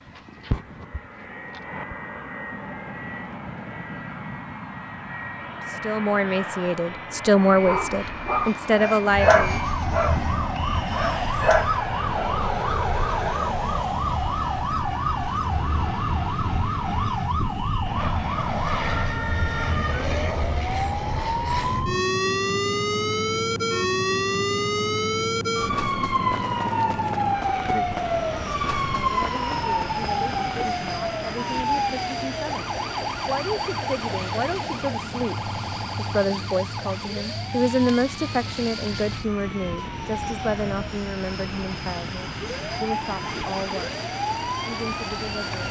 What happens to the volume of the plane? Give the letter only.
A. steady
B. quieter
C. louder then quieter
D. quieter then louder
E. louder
A.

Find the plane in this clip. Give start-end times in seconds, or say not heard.
0.0-45.6.